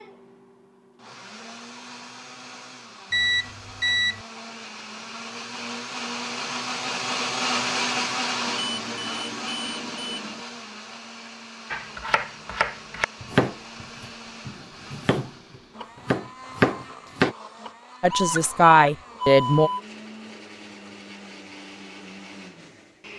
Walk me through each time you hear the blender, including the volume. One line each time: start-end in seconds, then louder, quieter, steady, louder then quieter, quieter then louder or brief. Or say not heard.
0.0-23.1 louder then quieter.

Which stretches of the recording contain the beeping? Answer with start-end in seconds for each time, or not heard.
3.1-4.2, 8.4-10.4, 18.1-19.8.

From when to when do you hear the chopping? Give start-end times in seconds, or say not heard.
11.7-15.3, 16.1-17.4.